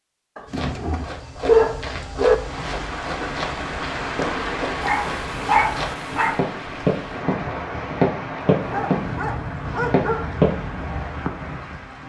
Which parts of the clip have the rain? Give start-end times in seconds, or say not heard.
2.3-12.0.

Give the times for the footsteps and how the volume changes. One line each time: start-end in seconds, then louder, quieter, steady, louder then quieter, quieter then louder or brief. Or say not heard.
0.5-10.7 louder.